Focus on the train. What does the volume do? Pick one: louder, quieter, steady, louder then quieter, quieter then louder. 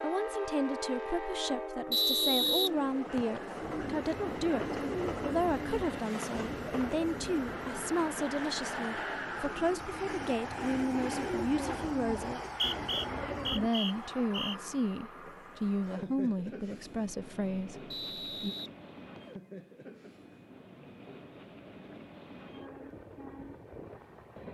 quieter.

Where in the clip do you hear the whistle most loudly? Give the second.
2 s.